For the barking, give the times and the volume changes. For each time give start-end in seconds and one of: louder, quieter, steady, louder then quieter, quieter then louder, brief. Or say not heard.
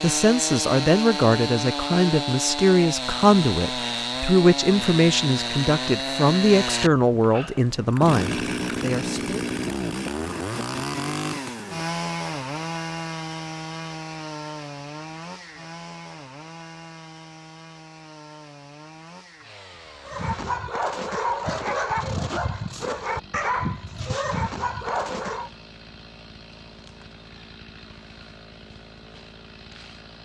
20.1-25.5 steady.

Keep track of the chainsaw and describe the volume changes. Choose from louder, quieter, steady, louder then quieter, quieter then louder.
quieter.